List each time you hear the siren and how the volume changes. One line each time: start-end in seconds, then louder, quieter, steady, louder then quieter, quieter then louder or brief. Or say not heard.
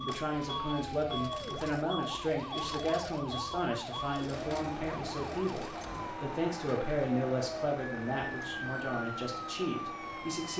0.0-10.5 steady.